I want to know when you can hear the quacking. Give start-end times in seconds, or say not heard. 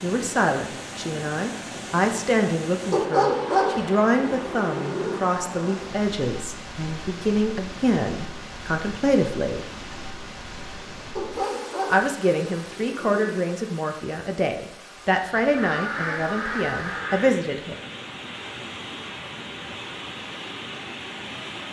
15.5-17.4.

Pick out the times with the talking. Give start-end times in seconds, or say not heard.
0.0-9.7, 11.9-17.8.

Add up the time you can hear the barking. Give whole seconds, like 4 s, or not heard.
5 s.